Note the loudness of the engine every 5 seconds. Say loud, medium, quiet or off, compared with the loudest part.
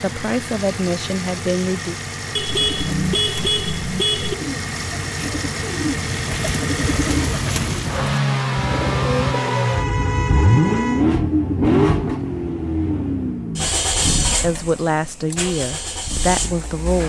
medium, loud, loud, medium.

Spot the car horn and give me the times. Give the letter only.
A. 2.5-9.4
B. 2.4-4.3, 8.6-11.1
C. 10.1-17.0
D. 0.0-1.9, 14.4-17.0
B.